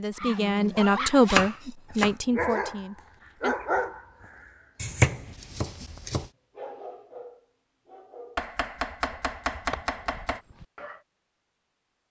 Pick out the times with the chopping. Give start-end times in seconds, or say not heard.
0.2-2.1, 4.8-6.3, 8.3-10.4.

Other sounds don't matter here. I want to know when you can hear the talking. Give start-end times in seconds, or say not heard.
0.0-3.5.